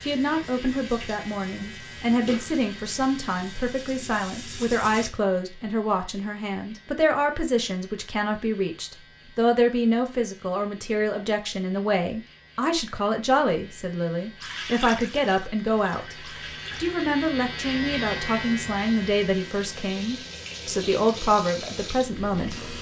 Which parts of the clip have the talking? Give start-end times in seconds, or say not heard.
0.0-16.1, 16.8-22.6.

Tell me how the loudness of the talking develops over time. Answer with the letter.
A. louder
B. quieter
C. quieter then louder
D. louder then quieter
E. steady
E.